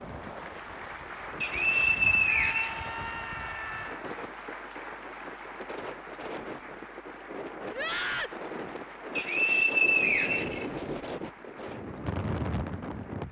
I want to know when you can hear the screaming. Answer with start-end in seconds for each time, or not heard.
2.2-4.0, 7.7-8.4.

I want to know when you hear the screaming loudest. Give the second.
8 s.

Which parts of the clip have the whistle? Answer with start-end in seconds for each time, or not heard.
1.4-2.9, 9.2-11.1.